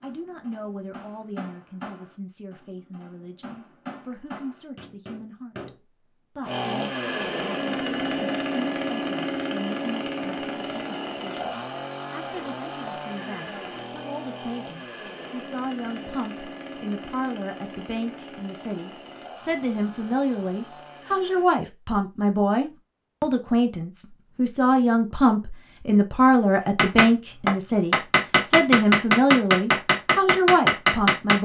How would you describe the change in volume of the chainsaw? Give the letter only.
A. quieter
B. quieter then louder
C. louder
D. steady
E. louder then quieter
A.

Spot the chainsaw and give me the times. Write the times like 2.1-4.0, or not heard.
6.4-21.5.